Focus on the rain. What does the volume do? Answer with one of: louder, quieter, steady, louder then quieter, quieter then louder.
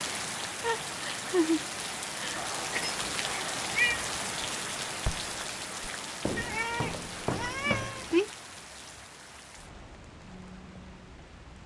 quieter.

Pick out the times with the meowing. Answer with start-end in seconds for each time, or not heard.
2.4-4.1, 6.3-8.3.